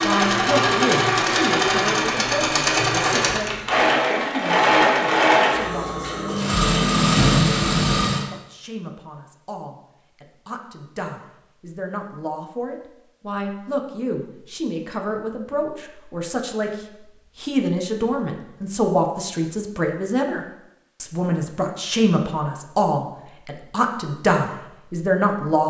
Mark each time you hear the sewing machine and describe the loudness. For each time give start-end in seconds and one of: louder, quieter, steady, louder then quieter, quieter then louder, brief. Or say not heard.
0.0-8.3 steady.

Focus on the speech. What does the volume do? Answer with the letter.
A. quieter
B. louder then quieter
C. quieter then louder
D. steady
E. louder
C.